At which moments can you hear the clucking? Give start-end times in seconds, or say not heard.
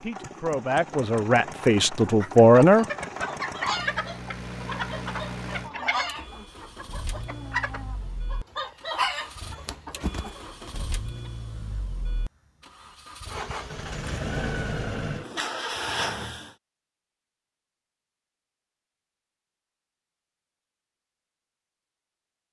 2.0-10.8.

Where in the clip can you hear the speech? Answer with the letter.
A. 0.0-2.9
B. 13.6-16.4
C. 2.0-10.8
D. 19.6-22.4
A.